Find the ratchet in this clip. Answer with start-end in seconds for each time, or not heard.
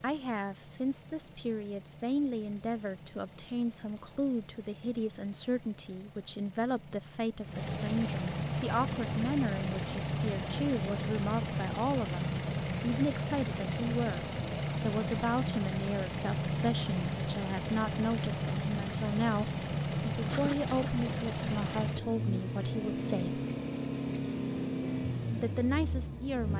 not heard.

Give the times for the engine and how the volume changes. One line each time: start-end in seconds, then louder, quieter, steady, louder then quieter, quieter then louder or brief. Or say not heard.
0.0-26.5 louder.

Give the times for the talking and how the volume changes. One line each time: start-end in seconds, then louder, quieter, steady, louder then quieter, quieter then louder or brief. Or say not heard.
0.0-23.4 steady
24.8-26.5 brief.